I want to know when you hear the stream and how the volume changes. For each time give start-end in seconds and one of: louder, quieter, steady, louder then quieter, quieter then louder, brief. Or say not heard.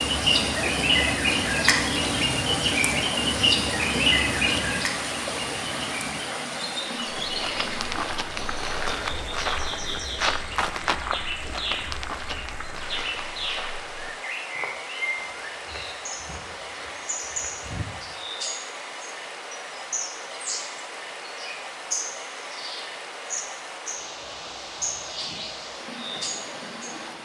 0.0-27.2 quieter.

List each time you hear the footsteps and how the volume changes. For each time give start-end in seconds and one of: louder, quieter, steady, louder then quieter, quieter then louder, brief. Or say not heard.
7.2-18.1 quieter.